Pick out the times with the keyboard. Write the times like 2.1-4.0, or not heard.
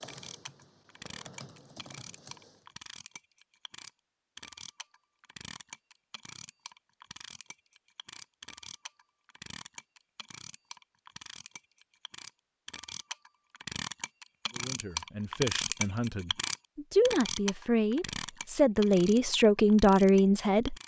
0.0-2.8.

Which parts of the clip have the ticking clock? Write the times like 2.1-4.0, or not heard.
0.0-20.8.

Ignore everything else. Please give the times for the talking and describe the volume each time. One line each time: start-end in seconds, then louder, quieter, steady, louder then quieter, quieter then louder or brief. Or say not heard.
14.6-20.8 louder.